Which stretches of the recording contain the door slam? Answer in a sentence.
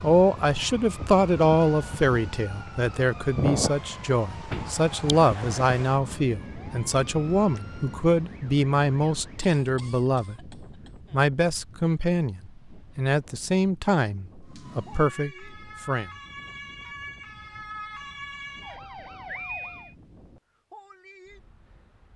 The door slam can be heard from 4.0 to 4.8 s.